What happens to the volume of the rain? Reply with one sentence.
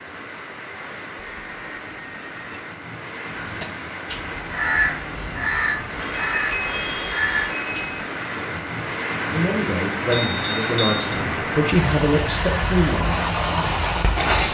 The loudness of the rain goes up.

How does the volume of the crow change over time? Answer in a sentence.
The loudness of the crow goes up, then down.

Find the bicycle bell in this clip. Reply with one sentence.
The bicycle bell can be heard from 1.1 to 2.6 s, from 6.1 to 8.0 s and from 10.1 to 11.0 s.